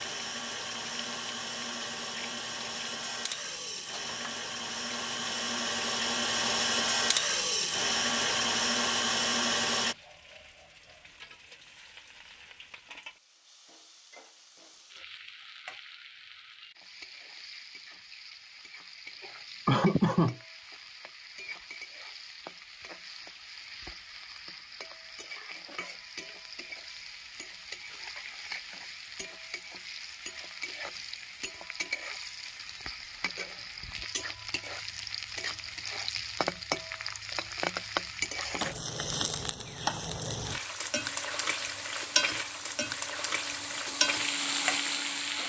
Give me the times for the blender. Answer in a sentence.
You can hear the blender from 0.0 to 9.9 s and from 41.1 to 45.4 s.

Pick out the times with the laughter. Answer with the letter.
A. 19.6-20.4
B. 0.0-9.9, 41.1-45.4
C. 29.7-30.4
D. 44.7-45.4
A.